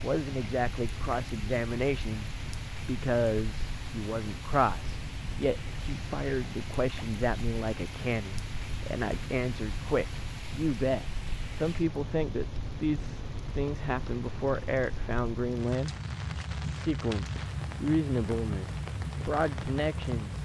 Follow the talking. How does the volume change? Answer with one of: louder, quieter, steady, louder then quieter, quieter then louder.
steady.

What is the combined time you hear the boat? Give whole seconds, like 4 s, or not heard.
20 s.